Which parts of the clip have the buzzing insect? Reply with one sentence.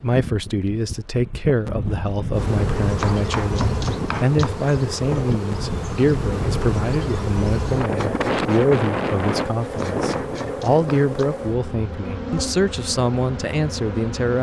You can hear the buzzing insect from 2.3 to 14.3 s.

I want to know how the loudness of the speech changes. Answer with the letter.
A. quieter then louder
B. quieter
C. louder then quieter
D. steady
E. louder
D.